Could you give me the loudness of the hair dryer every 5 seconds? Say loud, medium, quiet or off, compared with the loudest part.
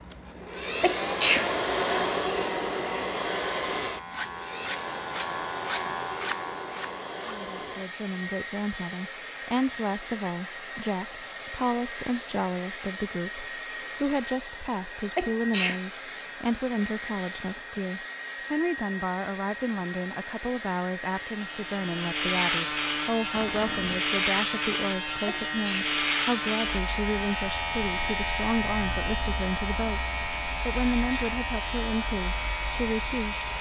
loud, medium, medium, medium, medium, medium, medium.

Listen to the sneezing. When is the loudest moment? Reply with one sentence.
The loudest moment of the sneezing is at 1 second.